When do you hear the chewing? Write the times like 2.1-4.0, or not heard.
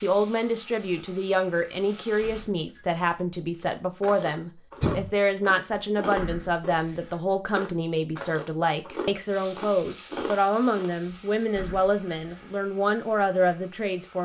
4.0-10.9.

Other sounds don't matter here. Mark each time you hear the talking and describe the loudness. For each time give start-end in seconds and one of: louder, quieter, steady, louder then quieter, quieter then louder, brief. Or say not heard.
0.0-14.2 steady.